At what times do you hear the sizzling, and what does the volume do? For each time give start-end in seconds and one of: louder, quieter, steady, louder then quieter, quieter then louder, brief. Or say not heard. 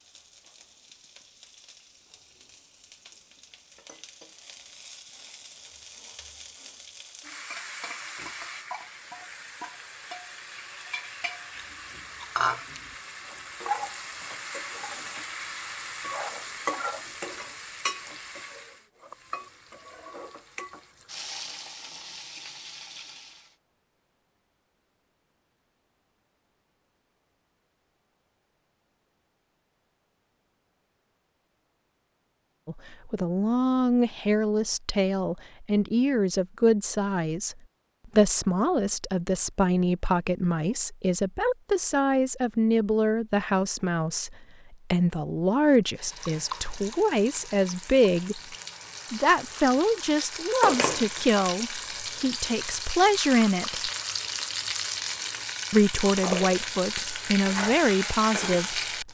0.0-23.5 louder then quieter
45.6-59.0 louder.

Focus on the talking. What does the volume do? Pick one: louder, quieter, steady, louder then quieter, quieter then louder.
steady.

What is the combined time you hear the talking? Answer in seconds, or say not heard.
23 s.